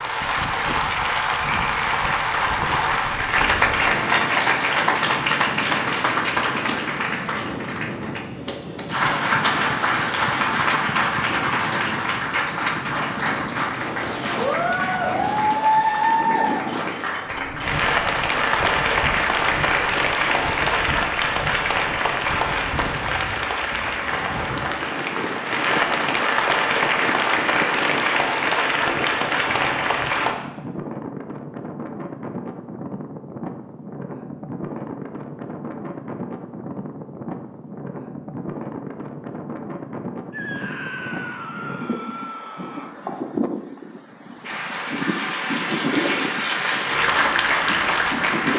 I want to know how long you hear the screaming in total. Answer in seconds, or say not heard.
3 s.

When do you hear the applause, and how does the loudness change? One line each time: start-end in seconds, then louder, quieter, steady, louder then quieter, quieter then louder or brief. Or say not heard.
0.0-30.4 steady
44.4-48.5 louder.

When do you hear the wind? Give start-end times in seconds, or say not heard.
0.0-48.5.